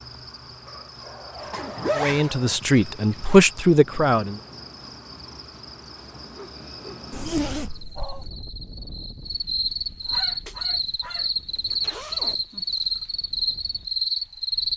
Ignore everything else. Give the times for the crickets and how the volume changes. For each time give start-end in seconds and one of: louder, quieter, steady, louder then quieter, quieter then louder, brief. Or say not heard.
0.0-14.7 louder.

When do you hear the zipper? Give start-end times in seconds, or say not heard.
1.5-3.4, 7.1-8.3, 11.6-13.1.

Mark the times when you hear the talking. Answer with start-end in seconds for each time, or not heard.
1.9-4.4.